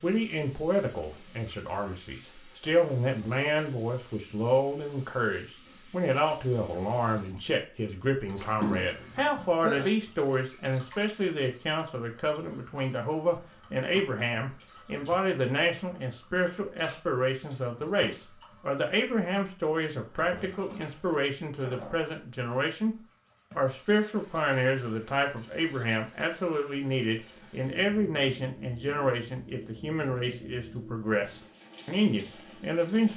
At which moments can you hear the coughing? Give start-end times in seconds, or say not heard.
8.3-9.9.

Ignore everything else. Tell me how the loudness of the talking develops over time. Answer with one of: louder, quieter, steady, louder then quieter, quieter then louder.
steady.